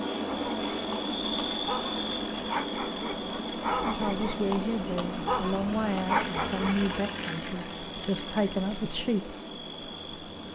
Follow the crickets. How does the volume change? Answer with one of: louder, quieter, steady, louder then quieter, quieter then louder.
quieter.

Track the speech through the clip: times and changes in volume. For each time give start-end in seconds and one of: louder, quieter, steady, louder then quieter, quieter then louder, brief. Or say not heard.
3.9-9.4 quieter then louder.